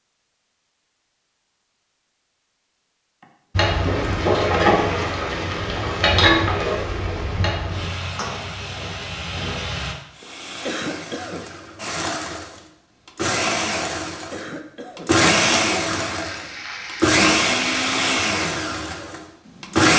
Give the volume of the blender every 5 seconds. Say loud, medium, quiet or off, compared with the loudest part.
off, off, medium, loud.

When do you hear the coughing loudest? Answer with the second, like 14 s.
11 s.